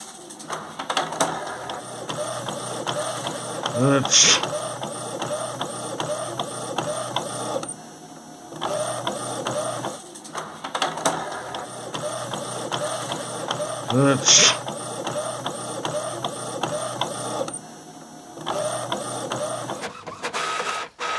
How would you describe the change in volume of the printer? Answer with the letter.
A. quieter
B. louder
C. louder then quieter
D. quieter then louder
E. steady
E.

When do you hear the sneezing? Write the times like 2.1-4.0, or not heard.
3.8-4.5, 13.9-14.6.